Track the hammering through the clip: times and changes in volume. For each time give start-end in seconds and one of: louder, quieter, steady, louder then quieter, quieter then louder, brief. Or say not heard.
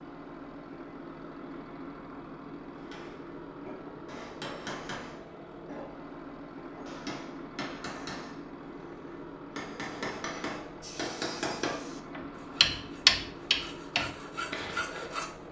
2.8-14.9 louder.